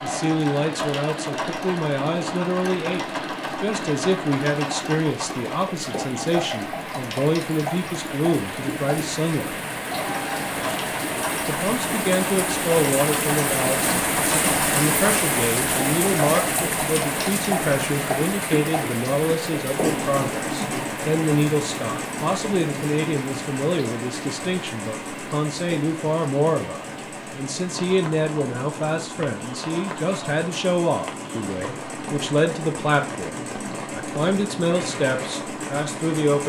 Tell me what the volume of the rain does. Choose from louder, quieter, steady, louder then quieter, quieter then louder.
louder then quieter.